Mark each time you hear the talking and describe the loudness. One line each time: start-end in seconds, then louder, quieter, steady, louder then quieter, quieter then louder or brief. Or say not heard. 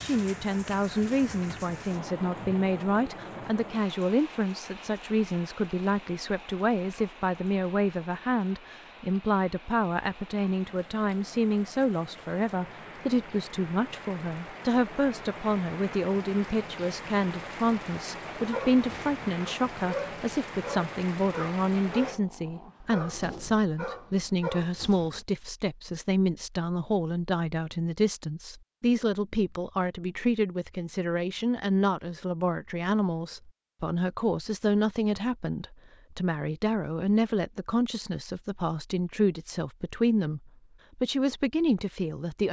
0.0-42.4 steady.